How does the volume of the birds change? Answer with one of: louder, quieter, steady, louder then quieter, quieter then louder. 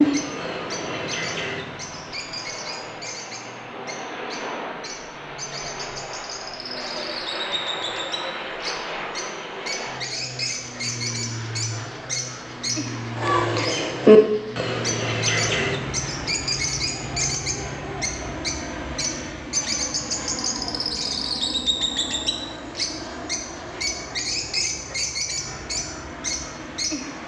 louder then quieter.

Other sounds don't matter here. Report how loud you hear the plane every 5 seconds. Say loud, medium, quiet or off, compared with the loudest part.
loud, loud, loud, loud, loud, medium.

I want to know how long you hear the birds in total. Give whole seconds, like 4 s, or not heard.
27 s.